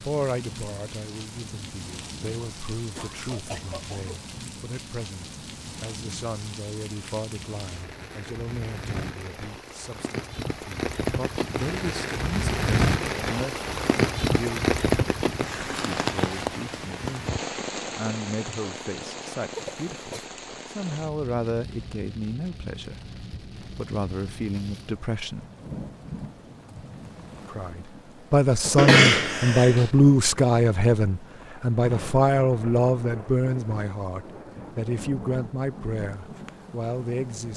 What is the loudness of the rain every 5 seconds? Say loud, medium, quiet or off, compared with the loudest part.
quiet, quiet, loud, medium, quiet, quiet, quiet, quiet.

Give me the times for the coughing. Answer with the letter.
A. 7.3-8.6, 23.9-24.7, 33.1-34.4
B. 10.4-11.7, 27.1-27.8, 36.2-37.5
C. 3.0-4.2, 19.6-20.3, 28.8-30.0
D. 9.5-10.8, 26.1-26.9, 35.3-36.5
C.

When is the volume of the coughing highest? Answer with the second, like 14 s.
29 s.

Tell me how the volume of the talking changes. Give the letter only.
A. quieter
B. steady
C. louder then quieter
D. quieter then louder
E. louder
E.